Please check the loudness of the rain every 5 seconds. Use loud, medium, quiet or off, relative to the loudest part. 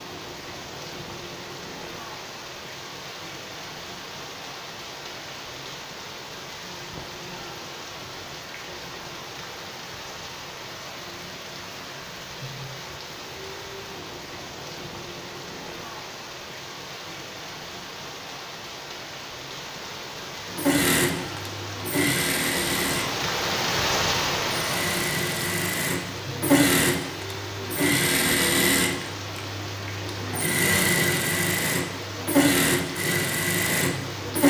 medium, medium, medium, medium, loud, medium, medium.